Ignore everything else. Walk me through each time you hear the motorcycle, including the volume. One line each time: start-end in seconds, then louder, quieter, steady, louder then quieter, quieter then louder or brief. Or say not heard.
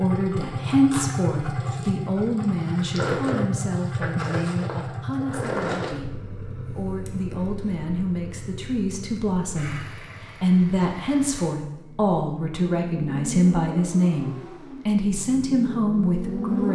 0.0-16.6 quieter then louder.